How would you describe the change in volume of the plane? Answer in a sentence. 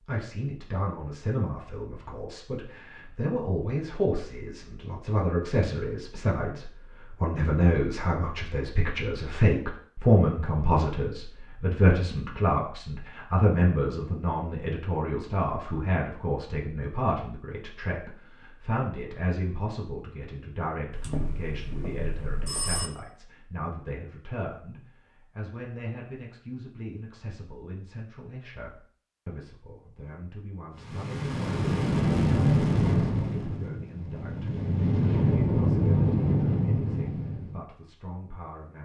The loudness of the plane goes down, then up.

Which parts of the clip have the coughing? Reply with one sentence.
You can't hear the coughing here.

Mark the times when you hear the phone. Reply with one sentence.
The phone can be heard from 20.9 to 22.9 s.